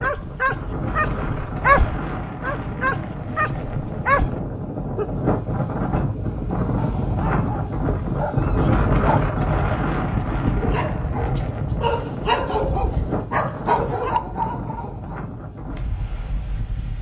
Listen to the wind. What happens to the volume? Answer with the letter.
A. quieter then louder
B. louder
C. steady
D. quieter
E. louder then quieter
E.